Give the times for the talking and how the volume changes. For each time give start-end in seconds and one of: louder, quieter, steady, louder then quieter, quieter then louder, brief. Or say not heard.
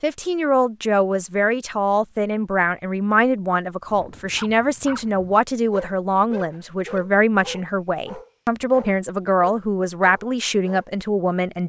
0.0-11.6 steady.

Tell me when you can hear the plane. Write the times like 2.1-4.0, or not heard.
not heard.